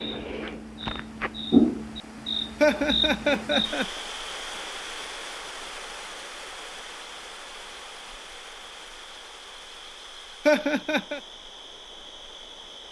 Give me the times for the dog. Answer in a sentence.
The dog can't be heard in this clip.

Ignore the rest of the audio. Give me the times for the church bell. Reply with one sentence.
The church bell can't be heard in this clip.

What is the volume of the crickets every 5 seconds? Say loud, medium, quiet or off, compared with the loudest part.
loud, quiet, quiet.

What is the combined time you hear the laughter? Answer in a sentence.
You can hear the laughter for 2 seconds altogether.